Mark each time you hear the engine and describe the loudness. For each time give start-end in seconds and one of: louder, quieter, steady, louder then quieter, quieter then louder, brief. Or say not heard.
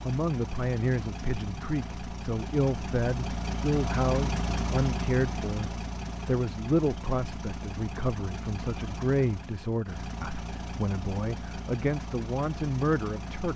0.0-13.5 louder then quieter.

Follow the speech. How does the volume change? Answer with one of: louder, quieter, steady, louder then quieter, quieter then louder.
steady.